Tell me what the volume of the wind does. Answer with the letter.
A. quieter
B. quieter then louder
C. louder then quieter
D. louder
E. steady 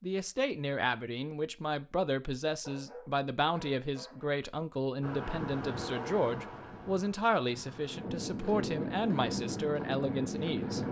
B.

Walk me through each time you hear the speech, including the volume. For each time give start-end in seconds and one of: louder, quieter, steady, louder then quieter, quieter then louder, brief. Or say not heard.
0.0-10.8 steady.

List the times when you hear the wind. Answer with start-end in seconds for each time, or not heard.
5.0-10.8.